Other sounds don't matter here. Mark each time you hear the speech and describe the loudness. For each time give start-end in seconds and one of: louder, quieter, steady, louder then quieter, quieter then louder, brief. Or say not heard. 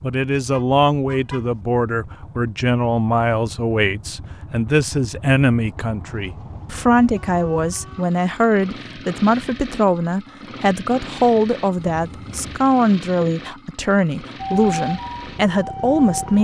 0.0-16.3 steady.